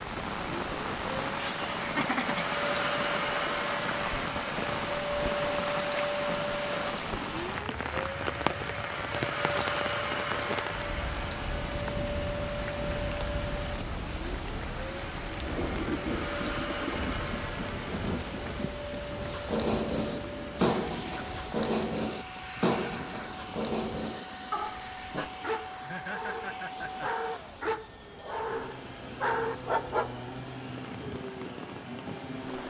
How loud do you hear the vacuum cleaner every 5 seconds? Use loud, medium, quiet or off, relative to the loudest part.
loud, loud, loud, medium, medium, medium, medium.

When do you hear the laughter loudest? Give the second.
2 s.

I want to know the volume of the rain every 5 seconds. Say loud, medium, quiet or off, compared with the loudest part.
loud, loud, loud, loud, medium, quiet, medium.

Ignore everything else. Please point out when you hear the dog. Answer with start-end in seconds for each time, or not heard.
19.2-30.2.